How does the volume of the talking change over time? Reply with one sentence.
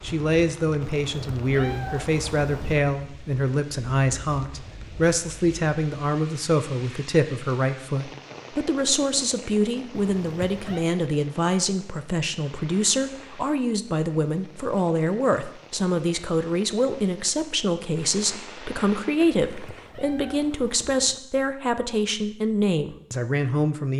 The volume of the talking stays about the same.